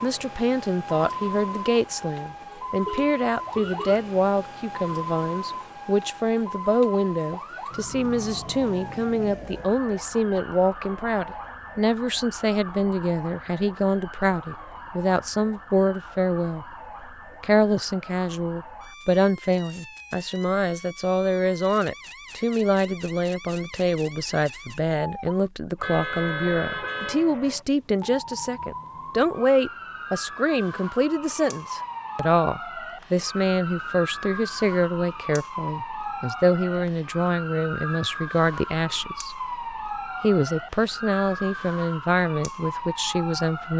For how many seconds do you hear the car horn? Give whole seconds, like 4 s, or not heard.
3 s.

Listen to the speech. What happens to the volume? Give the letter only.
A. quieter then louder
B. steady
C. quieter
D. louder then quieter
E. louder
B.